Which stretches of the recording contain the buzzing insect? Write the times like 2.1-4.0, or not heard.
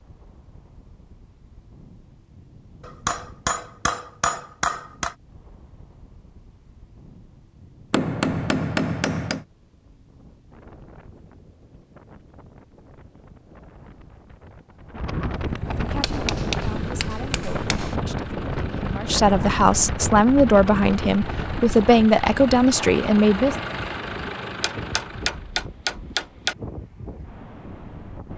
not heard.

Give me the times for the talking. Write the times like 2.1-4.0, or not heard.
15.7-23.6.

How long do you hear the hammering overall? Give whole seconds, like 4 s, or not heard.
8 s.